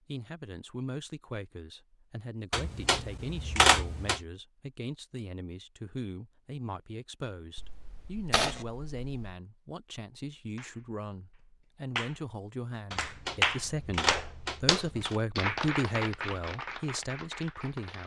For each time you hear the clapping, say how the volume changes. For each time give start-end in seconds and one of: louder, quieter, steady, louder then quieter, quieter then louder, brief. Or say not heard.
10.6-18.0 louder then quieter.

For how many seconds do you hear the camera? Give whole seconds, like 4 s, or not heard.
6 s.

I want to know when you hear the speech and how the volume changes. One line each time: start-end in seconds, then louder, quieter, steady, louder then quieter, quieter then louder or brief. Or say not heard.
0.1-18.0 louder.